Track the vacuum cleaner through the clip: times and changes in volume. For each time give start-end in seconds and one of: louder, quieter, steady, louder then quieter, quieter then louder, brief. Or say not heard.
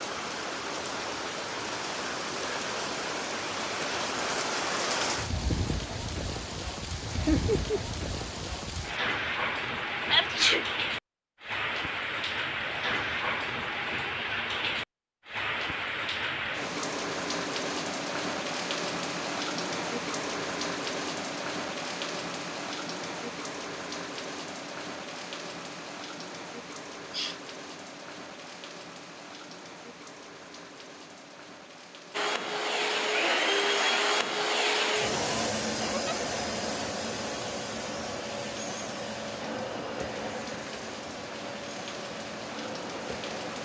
32.1-43.6 quieter.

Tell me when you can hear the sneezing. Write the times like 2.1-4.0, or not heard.
10.1-10.7.